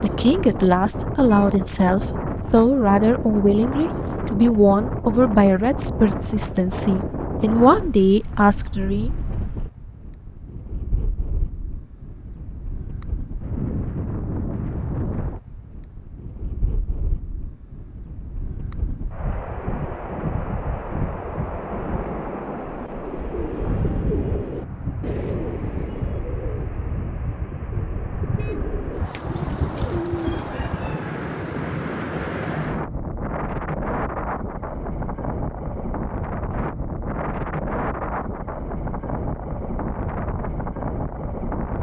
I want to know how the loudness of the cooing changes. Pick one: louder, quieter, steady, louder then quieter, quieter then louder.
quieter then louder.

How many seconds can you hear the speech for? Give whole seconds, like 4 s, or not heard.
9 s.